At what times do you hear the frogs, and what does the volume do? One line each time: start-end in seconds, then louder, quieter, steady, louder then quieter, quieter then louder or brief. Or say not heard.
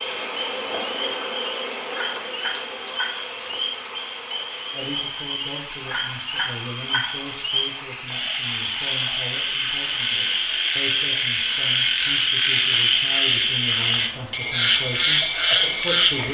0.0-16.2 louder.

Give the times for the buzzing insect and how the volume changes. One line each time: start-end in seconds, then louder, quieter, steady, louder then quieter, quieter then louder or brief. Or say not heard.
0.0-5.0 quieter.